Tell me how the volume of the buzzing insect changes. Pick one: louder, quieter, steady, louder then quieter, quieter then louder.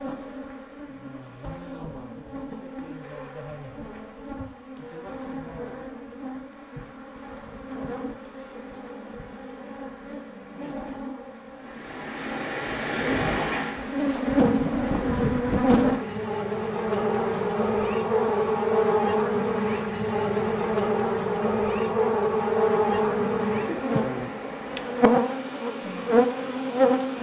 louder.